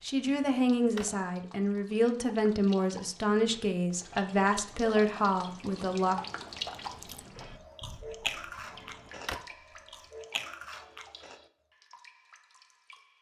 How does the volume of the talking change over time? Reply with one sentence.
The loudness of the talking stays about the same.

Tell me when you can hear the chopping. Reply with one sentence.
You can't hear the chopping here.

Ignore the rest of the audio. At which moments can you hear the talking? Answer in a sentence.
You can hear the talking from 0.0 to 6.2 s.